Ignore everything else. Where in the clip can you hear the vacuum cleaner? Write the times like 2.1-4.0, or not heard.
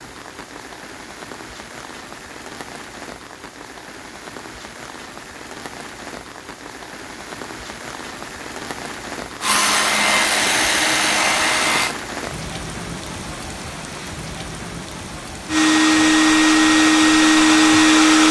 9.4-11.9, 15.4-18.2.